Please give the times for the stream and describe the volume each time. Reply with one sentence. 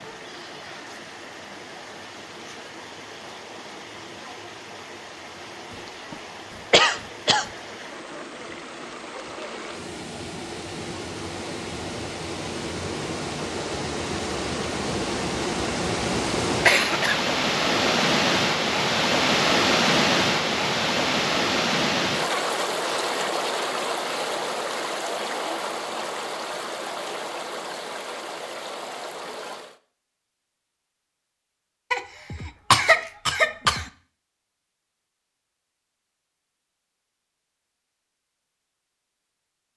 The stream can be heard from 0.0 to 29.8 s, getting louder then quieter.